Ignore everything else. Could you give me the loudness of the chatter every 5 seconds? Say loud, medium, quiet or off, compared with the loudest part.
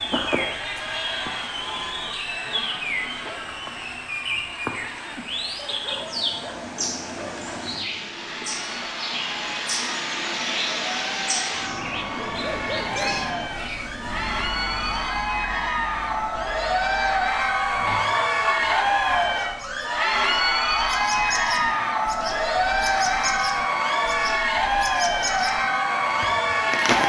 medium, quiet, medium, loud, loud, loud.